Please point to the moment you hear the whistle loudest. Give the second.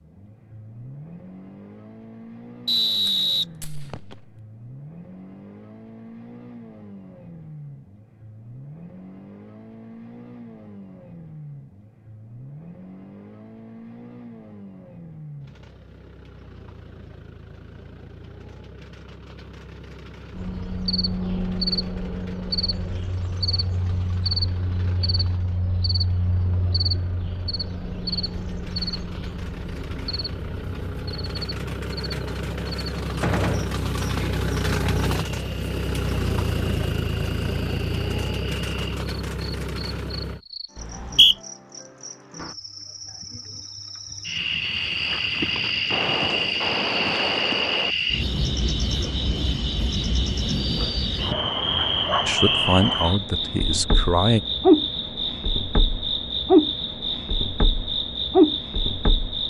41 s.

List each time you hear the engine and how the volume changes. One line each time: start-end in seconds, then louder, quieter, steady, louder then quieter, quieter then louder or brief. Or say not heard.
0.0-40.4 louder.